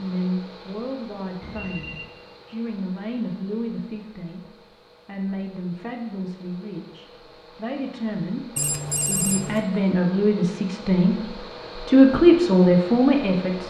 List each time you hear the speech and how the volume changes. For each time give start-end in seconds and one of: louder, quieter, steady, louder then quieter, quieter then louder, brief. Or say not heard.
0.0-11.2 louder
11.8-13.6 brief.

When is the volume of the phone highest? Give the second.
9 s.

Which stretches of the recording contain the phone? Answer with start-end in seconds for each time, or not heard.
1.4-2.0, 8.6-9.7.